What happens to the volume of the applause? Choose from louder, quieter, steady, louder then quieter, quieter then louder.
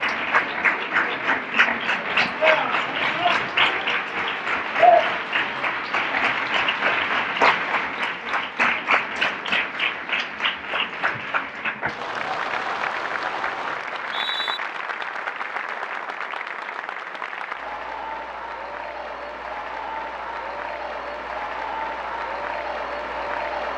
quieter.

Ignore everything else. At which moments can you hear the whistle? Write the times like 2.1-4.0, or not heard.
13.8-14.6.